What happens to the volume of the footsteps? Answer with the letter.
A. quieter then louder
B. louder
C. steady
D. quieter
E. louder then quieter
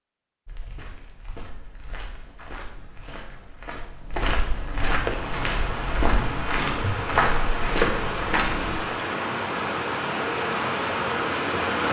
B.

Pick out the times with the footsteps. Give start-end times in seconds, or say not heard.
0.5-8.8.